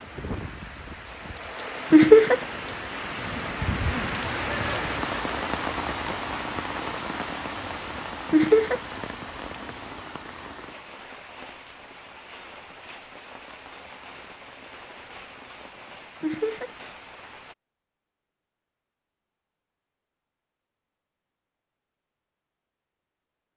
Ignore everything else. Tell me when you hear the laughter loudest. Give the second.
2 s.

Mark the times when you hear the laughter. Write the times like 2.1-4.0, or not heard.
1.9-2.4, 8.3-8.8, 16.2-16.7.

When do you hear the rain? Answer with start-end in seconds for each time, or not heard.
0.0-17.6.